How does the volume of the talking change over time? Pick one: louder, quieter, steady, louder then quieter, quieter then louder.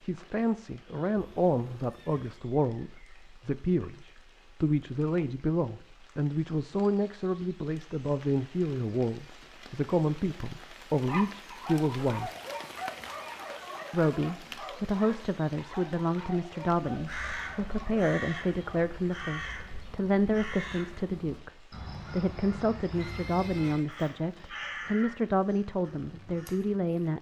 steady.